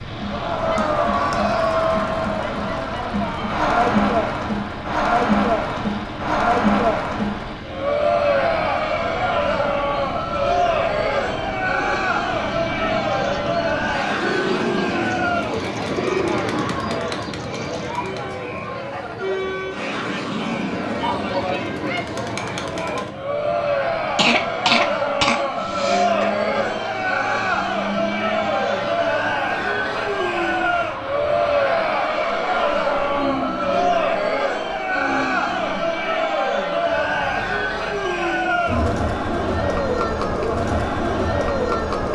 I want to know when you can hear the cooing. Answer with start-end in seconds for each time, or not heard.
11.7-17.9.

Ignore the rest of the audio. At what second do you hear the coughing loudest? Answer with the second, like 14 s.
25 s.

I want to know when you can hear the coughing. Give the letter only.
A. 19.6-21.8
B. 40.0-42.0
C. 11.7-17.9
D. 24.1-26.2
D.